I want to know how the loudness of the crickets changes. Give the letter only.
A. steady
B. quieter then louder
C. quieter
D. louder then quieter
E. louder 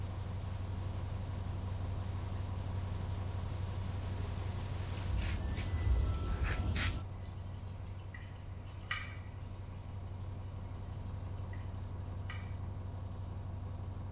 D.